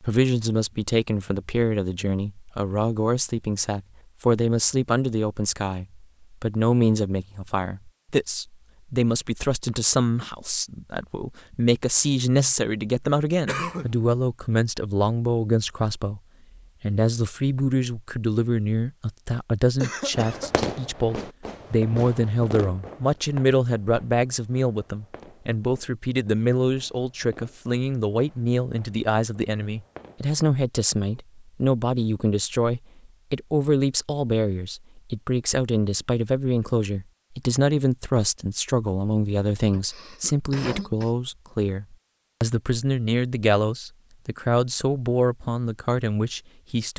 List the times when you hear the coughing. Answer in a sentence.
The coughing can be heard from 13.4 to 13.9 s, from 19.8 to 20.6 s and from 39.7 to 41.1 s.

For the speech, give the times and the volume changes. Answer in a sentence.
The speech can be heard from 0.0 to 16.2 s, at a steady volume; and from 16.8 to 46.9 s, at a steady volume.